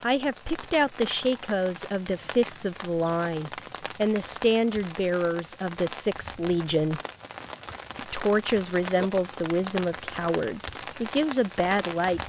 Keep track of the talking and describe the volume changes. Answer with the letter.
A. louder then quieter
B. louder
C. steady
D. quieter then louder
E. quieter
C.